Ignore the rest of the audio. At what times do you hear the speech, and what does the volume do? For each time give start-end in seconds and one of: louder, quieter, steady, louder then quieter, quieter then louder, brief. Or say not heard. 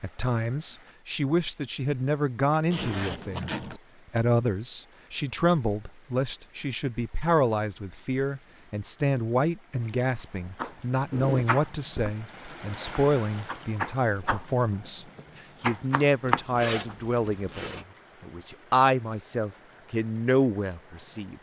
0.0-21.3 steady.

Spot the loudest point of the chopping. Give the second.
16 s.